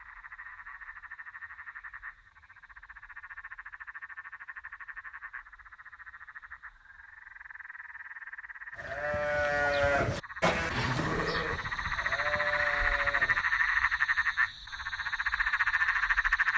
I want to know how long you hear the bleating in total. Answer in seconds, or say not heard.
5 s.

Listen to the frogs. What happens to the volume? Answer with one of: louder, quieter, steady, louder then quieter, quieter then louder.
louder.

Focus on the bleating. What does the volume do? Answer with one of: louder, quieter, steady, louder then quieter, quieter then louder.
quieter then louder.